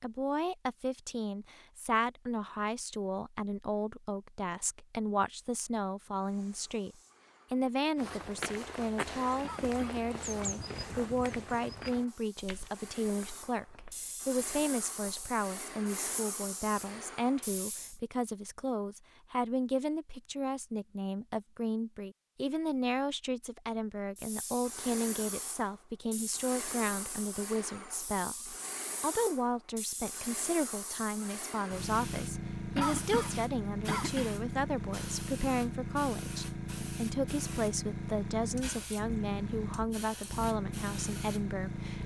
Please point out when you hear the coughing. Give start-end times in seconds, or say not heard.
9.4-10.1, 32.8-34.4.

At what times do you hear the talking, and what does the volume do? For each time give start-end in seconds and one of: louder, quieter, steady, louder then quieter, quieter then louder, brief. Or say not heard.
0.0-42.0 steady.